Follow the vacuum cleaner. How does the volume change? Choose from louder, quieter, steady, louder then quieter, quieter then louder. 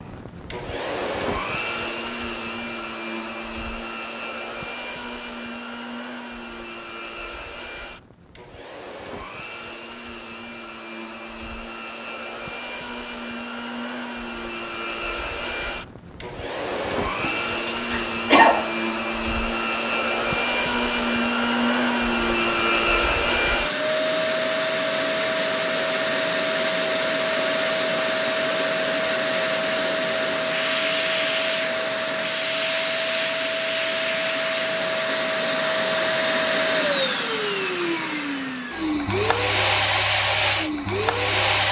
louder.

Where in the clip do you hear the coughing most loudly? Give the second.
18 s.